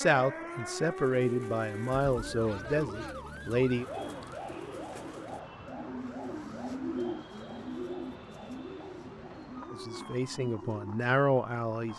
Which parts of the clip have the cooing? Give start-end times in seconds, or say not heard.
0.8-11.1.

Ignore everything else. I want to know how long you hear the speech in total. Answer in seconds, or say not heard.
6 s.